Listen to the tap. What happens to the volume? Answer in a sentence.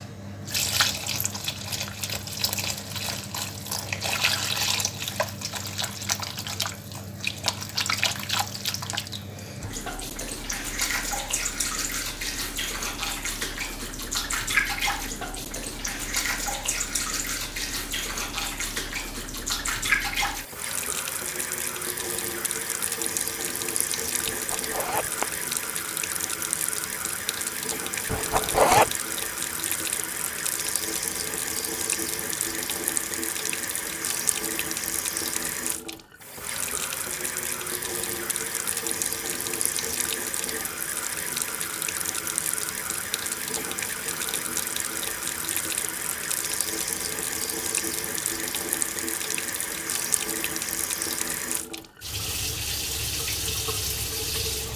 The loudness of the tap stays about the same.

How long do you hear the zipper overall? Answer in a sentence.
You can hear the zipper for 2 seconds altogether.